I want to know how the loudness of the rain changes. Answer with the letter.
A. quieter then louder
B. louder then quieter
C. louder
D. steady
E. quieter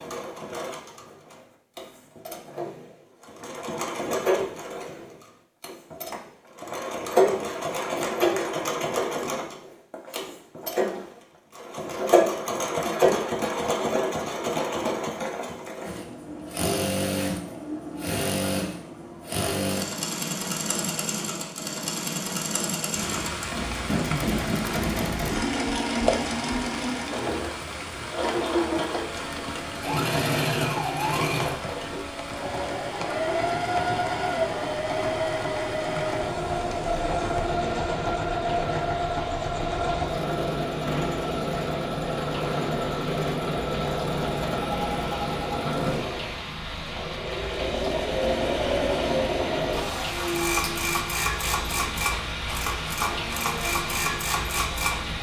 A.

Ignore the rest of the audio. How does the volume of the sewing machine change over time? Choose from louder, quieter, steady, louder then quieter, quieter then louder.
steady.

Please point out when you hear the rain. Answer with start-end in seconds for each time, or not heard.
22.9-55.1.